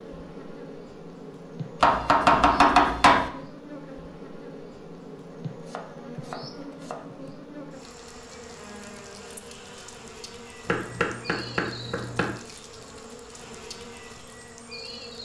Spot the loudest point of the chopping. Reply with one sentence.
The volume of the chopping peaks at 3 seconds.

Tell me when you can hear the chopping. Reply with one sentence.
You can hear the chopping from 1.8 to 3.3 s, from 5.7 to 7.0 s and from 10.7 to 12.3 s.